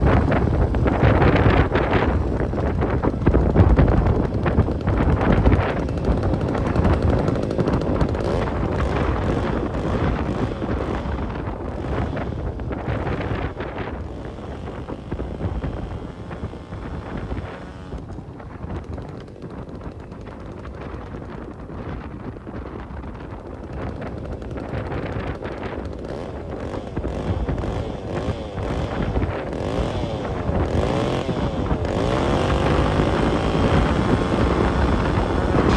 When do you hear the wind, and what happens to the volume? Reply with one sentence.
The wind can be heard from 0.0 to 35.7 s, getting quieter then louder.